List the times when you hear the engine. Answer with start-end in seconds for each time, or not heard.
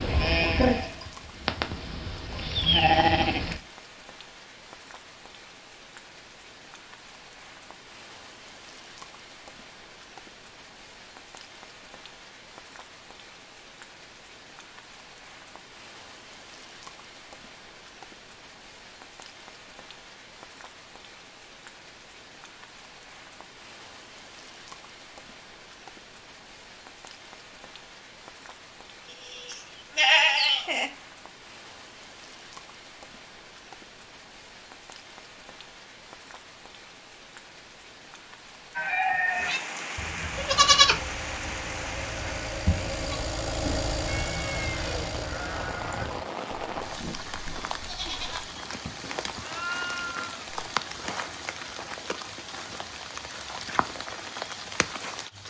40.3-46.0.